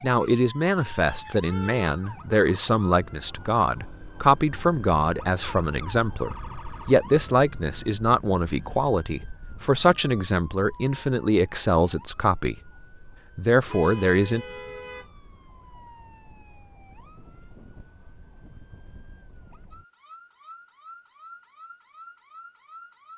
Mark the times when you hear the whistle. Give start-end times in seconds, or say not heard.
not heard.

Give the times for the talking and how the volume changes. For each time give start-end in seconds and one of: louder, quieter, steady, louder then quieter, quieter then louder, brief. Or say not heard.
0.0-12.6 steady
13.3-14.4 brief.